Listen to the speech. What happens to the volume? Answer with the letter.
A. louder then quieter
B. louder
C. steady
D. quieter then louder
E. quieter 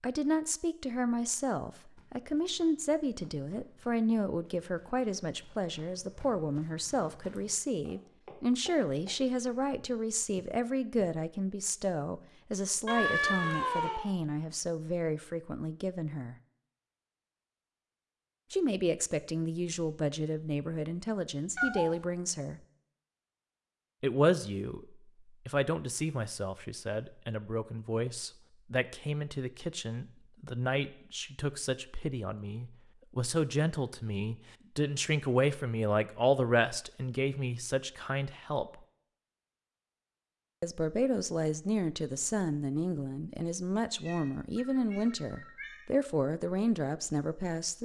C.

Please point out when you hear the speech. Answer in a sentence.
You can hear the speech from 0.0 to 16.4 s, from 18.5 to 22.6 s, from 24.0 to 38.8 s and from 40.6 to 47.8 s.